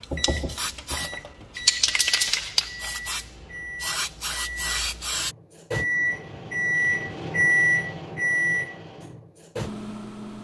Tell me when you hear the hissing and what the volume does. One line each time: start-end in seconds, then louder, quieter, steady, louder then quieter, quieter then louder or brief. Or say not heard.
0.0-5.3 louder then quieter.